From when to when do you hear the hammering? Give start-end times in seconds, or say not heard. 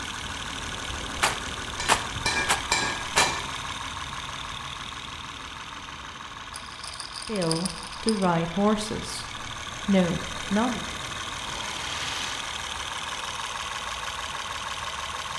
1.8-3.3.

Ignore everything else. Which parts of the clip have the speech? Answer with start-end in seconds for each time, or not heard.
7.2-10.8.